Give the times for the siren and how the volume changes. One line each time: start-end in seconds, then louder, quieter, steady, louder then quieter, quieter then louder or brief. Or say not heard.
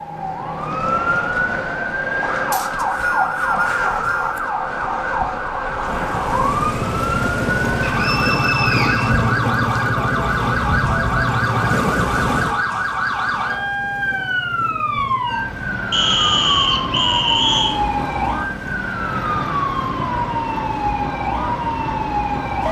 0.0-22.6 steady.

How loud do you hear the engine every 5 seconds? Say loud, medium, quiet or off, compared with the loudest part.
off, loud, loud, quiet, quiet.